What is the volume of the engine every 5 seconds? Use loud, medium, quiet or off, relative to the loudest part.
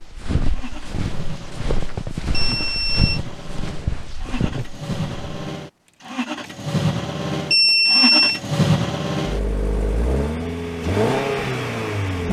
medium, loud, loud.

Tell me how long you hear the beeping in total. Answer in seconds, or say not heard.
2 s.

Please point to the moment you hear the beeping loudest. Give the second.
8 s.